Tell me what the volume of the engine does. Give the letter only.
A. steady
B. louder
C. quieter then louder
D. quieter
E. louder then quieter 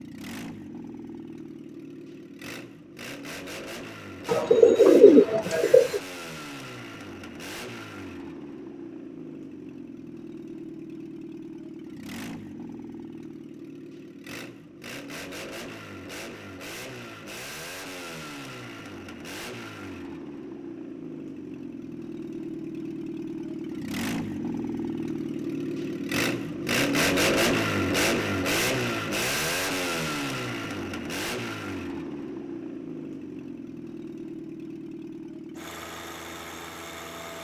E.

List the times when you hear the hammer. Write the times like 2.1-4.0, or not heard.
not heard.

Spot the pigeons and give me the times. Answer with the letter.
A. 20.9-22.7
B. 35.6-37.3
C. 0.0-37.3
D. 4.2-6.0
D.